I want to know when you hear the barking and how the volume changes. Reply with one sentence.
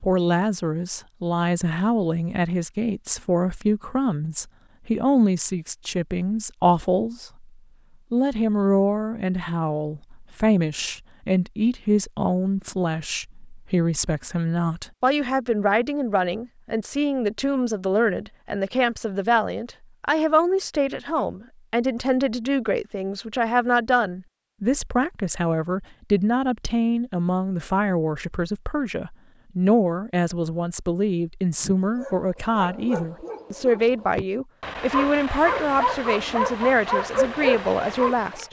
You can hear the barking from 31.6 to 38.4 s, getting louder.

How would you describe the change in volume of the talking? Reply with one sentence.
The volume of the talking stays about the same.